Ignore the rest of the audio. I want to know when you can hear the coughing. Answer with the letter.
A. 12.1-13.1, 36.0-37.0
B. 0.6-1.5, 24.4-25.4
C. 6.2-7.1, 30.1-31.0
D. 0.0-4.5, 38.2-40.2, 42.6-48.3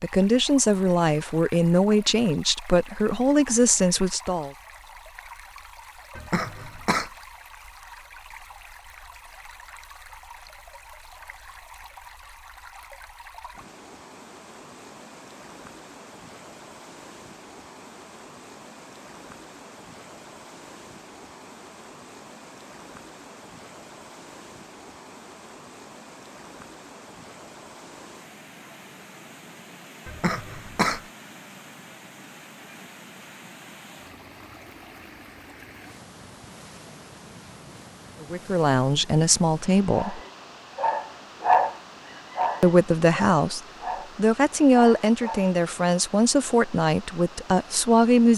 C.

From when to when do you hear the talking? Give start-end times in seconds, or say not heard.
0.0-4.5, 38.2-40.2, 42.6-48.3.